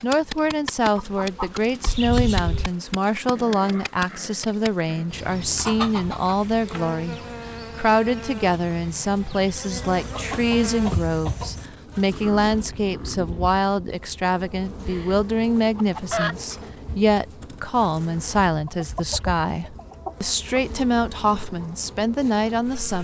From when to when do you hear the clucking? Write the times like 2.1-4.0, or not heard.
0.9-2.7, 5.5-7.2, 9.7-11.7, 14.8-16.6, 18.6-20.6.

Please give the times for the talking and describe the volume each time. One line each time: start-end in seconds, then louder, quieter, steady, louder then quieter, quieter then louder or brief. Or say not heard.
0.0-22.9 steady.